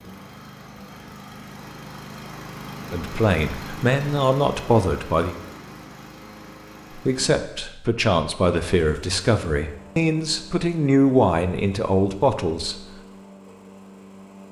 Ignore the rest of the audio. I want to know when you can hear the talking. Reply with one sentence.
You can hear the talking from 2.9 to 5.3 s and from 7.0 to 12.8 s.